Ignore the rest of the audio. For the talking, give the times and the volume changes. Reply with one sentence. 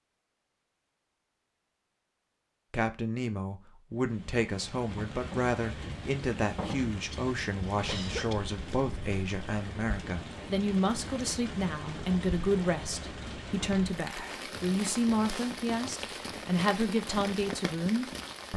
The talking can be heard from 2.7 to 18.5 s, at a steady volume.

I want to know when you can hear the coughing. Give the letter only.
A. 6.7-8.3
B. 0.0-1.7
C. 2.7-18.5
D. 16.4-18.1
A.